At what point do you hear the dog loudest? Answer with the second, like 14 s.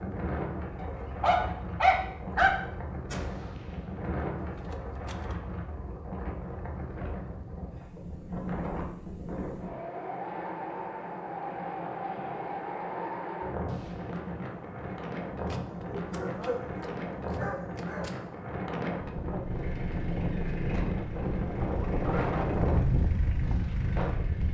2 s.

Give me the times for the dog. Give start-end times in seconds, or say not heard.
0.8-2.5, 15.7-18.1.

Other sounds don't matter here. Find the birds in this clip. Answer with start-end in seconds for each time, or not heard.
not heard.